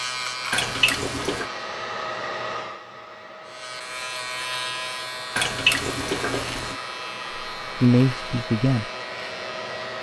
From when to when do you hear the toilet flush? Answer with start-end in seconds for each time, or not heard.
0.5-1.5, 5.3-6.8.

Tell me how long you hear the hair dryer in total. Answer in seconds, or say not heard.
10 s.